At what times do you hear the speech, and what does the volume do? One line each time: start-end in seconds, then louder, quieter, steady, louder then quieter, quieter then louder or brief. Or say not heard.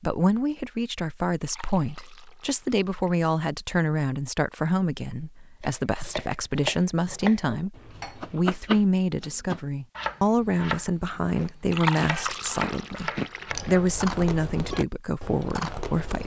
0.0-16.2 steady.